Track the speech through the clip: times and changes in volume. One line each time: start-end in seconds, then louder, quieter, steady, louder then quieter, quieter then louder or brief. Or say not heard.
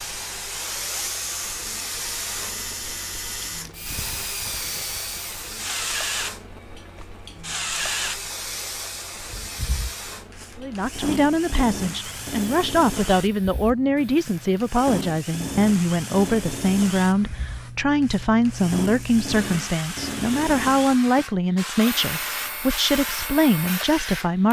10.6-24.4 steady.